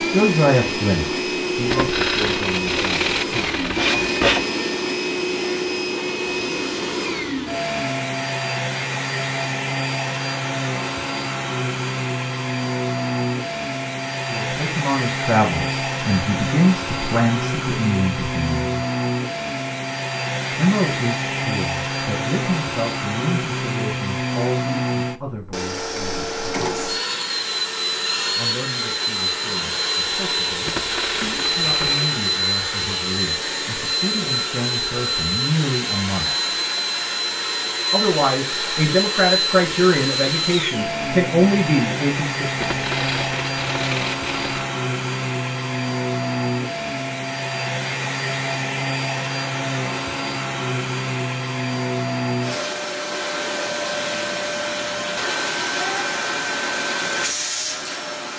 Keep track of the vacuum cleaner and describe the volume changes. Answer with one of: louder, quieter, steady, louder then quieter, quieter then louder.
steady.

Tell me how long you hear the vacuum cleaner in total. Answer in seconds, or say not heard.
58 s.